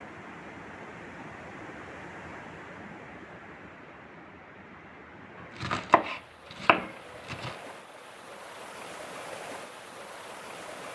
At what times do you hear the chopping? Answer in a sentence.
You can hear the chopping from 5.4 to 7.5 s.